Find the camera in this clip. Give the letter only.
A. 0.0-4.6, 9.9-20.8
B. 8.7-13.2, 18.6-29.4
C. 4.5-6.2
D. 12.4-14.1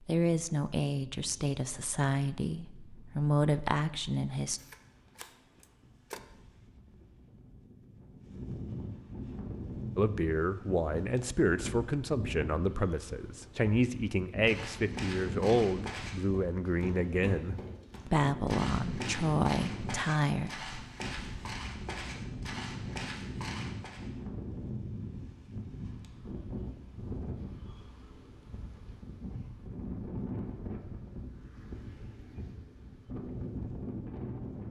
C.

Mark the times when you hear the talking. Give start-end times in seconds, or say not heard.
0.0-4.6, 9.9-20.8.